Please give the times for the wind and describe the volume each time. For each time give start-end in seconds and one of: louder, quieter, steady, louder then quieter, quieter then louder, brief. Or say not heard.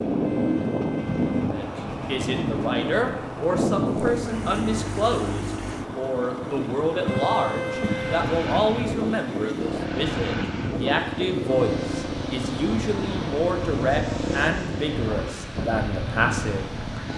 0.0-17.1 steady.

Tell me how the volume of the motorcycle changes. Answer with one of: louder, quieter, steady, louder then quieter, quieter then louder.
steady.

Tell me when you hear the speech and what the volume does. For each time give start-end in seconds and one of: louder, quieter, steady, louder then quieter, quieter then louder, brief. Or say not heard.
1.4-16.7 steady.